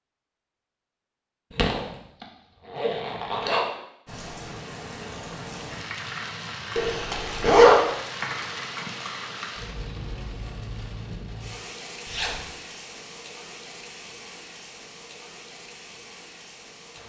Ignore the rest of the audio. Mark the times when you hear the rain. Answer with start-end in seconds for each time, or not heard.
4.0-17.0.